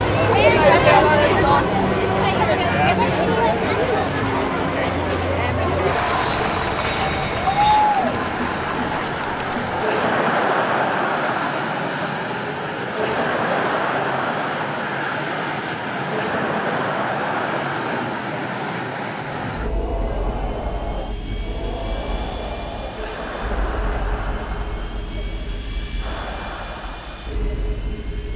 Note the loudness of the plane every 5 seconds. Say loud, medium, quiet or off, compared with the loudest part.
loud, loud, loud, loud, medium, medium.